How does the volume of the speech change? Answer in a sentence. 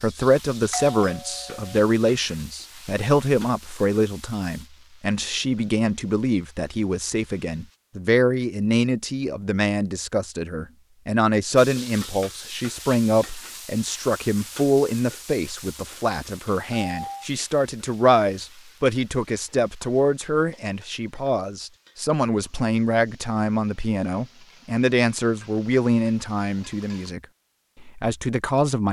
The loudness of the speech stays about the same.